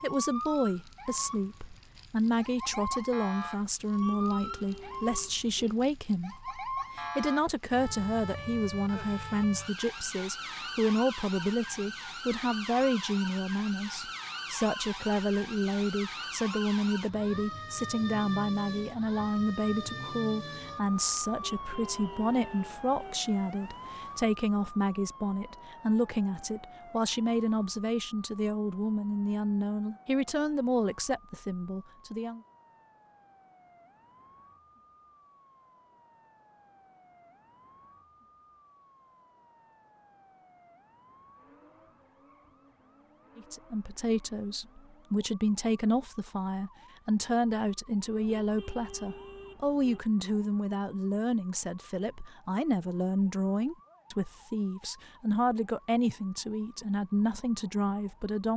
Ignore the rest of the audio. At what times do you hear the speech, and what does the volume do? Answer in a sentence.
The speech can be heard from 0.0 to 32.4 s, at a steady volume; and from 43.4 to 58.5 s, at a steady volume.